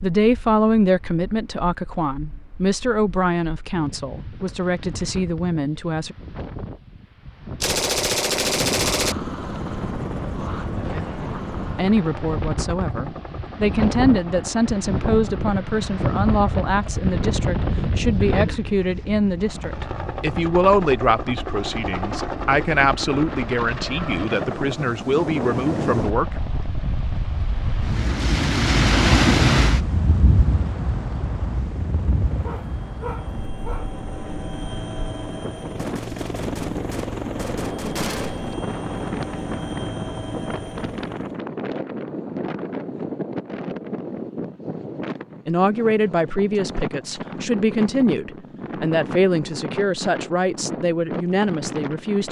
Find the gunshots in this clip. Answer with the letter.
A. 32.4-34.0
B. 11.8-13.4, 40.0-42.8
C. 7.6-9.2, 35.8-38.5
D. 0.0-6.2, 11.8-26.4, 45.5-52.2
C.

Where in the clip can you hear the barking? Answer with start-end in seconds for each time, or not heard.
32.4-34.0.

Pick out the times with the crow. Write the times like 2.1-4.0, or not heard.
not heard.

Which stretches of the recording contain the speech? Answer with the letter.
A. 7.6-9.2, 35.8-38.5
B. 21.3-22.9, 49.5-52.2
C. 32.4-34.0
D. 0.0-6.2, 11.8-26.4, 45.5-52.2
D.